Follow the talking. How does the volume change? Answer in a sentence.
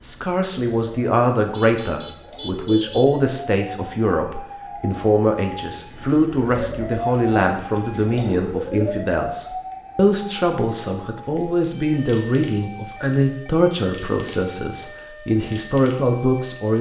The volume of the talking stays about the same.